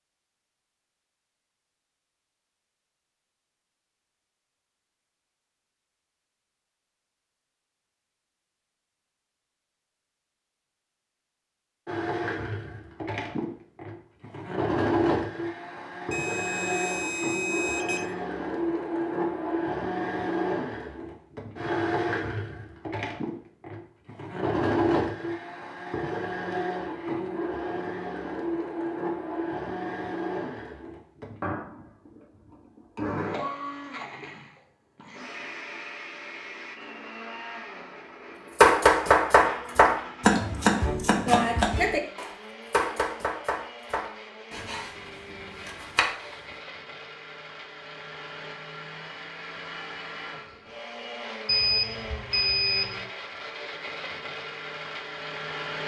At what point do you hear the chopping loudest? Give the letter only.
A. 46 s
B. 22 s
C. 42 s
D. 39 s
D.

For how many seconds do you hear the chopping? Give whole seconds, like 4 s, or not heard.
8 s.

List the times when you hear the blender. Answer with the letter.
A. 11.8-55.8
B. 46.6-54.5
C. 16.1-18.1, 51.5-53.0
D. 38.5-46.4
A.